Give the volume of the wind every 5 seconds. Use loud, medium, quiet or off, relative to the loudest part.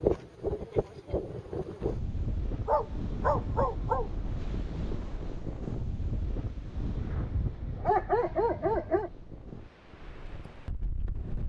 loud, medium, medium.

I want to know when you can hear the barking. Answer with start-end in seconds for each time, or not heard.
2.6-4.1, 6.9-9.1.